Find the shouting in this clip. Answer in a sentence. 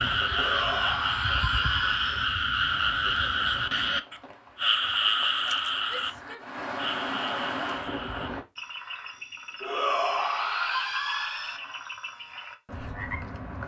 The shouting can be heard from 0.2 to 2.2 s, from 5.8 to 6.5 s and from 9.6 to 11.6 s.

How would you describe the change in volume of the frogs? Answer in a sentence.
The loudness of the frogs goes down.